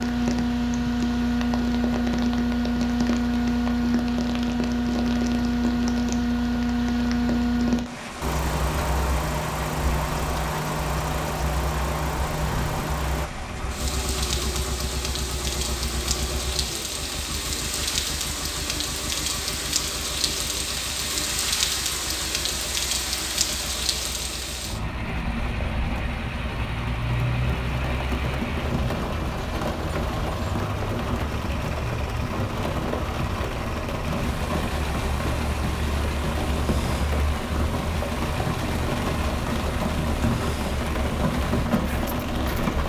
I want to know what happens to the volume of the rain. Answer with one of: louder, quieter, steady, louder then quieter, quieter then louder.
louder.